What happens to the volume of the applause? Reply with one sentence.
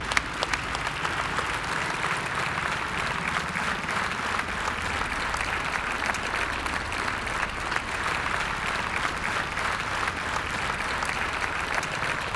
The volume of the applause stays about the same.